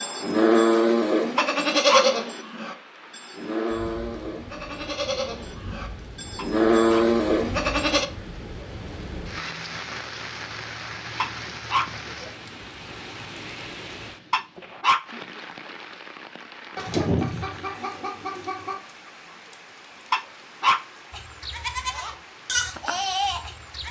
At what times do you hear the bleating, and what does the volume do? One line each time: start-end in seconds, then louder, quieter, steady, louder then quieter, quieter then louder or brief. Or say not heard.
0.0-8.1 quieter then louder
21.1-23.8 brief.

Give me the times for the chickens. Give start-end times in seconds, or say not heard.
16.8-18.8.